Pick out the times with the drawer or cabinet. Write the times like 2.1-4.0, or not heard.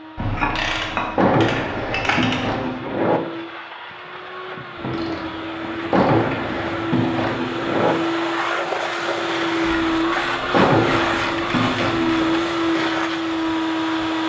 1.1-3.2, 5.9-8.0, 10.5-12.4.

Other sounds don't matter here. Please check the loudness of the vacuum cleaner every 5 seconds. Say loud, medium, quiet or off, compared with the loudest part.
quiet, loud, loud.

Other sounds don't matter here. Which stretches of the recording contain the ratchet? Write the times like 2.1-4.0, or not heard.
0.1-2.7, 4.8-7.2, 9.6-12.2.